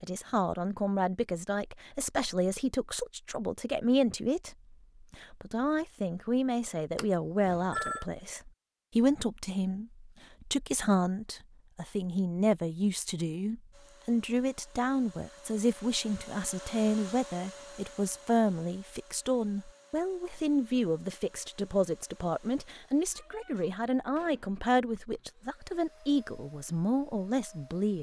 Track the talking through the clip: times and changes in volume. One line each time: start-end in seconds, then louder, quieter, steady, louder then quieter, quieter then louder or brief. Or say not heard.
0.0-27.9 steady.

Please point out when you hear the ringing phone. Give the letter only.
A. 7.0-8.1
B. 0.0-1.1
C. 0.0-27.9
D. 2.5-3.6
A.